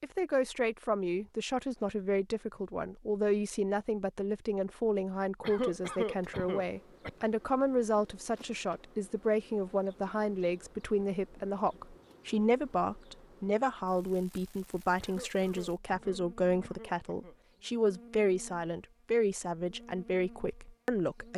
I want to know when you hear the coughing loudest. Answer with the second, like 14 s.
6 s.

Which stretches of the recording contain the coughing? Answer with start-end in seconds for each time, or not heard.
5.4-7.1, 15.0-17.4.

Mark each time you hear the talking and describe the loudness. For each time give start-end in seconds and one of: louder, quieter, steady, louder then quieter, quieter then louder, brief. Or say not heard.
0.0-21.3 steady.